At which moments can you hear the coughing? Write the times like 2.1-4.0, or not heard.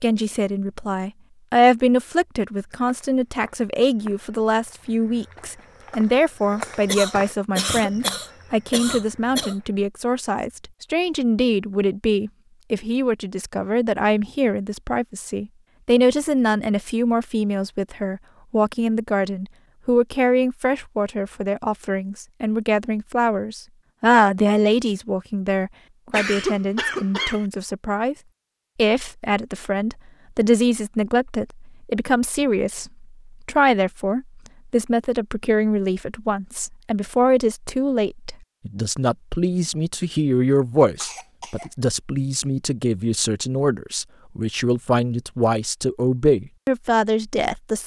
6.8-9.6, 26.1-27.4, 41.0-41.7.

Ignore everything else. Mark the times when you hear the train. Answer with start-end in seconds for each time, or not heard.
not heard.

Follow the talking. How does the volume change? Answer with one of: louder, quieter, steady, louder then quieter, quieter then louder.
steady.